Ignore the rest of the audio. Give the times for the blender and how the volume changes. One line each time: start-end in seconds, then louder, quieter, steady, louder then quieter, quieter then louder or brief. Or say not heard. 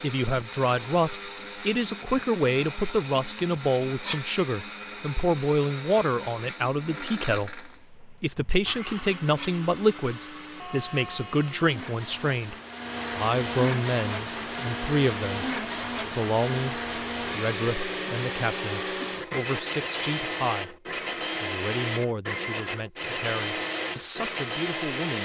0.0-25.2 louder.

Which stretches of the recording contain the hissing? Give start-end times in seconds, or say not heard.
23.6-25.2.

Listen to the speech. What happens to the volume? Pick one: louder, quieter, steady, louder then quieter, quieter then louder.
quieter.